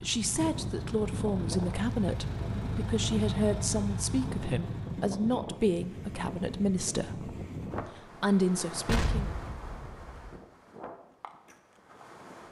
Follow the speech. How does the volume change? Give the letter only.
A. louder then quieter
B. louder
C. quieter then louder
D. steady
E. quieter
D.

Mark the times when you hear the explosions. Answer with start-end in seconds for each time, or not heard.
8.8-10.4.